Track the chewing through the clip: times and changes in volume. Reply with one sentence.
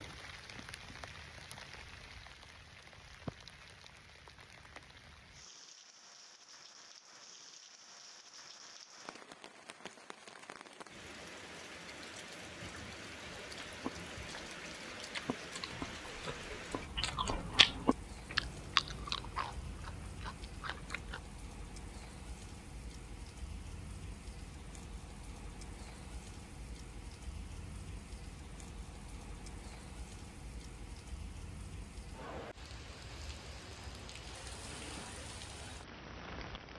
You can hear the chewing from 13.6 to 21.2 s, getting louder then quieter.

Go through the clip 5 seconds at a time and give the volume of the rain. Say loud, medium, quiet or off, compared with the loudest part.
loud, medium, loud, loud, loud, loud, loud, loud.